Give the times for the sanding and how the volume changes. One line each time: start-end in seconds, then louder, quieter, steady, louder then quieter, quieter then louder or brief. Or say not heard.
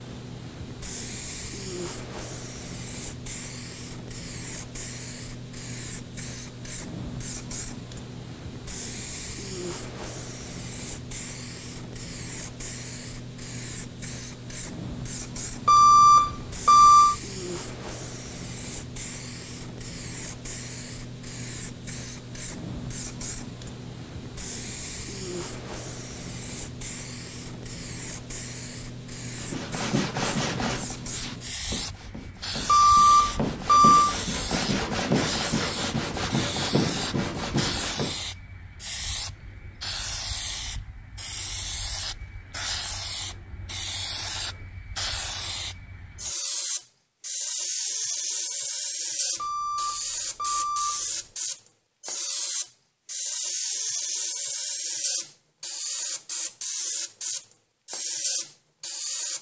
29.4-38.2 quieter then louder.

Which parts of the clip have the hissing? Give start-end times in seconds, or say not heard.
0.0-59.3.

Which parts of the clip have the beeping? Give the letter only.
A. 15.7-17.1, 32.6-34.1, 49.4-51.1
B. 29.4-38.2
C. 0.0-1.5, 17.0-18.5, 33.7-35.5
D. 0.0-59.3
A.